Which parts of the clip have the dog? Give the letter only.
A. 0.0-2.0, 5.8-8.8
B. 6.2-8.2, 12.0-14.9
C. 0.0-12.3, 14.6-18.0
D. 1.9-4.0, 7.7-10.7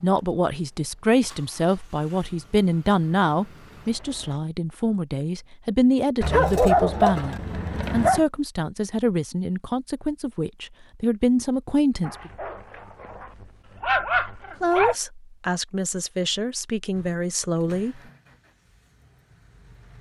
B.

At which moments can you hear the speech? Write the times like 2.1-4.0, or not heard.
0.0-12.3, 14.6-18.0.